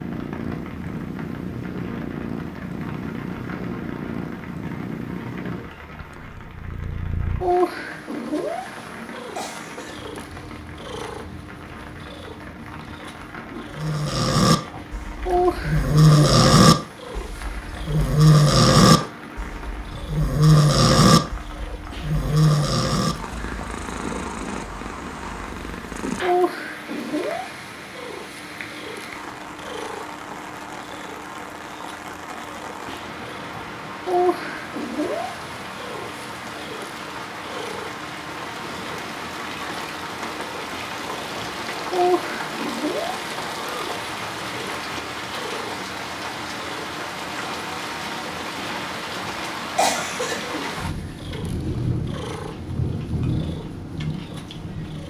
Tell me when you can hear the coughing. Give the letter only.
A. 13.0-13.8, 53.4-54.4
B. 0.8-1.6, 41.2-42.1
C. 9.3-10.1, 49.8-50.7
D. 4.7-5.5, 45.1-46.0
C.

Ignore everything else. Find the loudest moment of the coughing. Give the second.
50 s.